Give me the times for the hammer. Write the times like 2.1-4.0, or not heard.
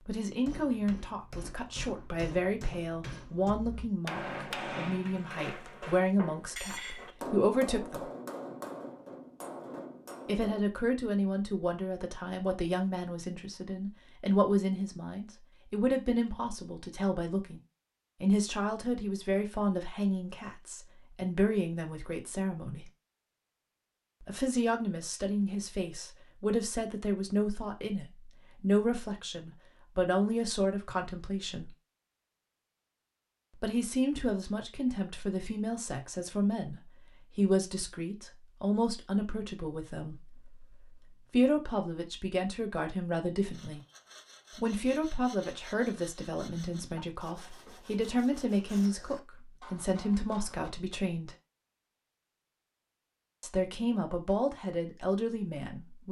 0.4-10.6.